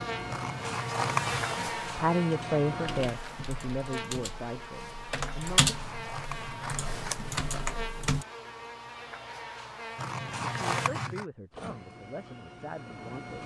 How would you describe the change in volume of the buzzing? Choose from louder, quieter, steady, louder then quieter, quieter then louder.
quieter.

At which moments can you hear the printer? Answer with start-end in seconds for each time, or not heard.
0.0-3.1, 11.5-13.4.